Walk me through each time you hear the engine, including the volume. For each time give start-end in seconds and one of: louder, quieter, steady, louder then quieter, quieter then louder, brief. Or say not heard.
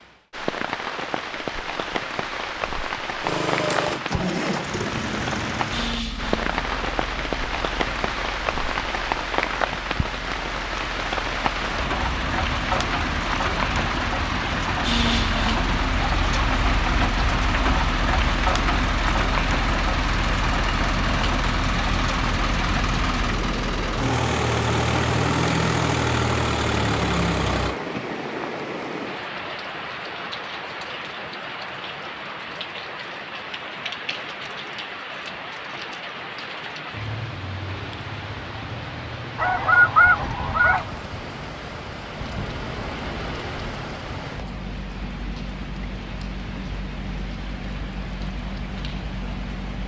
3.2-27.8 quieter then louder.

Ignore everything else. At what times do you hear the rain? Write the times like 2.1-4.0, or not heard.
0.0-49.8.